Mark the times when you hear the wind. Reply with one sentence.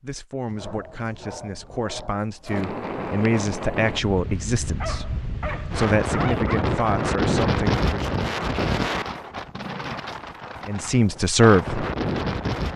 You can hear the wind from 2.5 to 12.7 s.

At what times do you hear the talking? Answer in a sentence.
You can hear the talking from 0.0 to 8.2 s and from 10.7 to 11.8 s.